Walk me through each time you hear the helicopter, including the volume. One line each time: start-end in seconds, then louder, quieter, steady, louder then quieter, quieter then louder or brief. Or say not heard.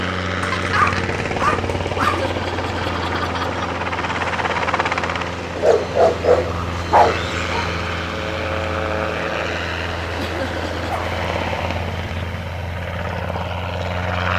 0.0-14.3 steady.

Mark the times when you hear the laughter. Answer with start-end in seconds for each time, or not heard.
1.9-3.7, 10.2-10.8.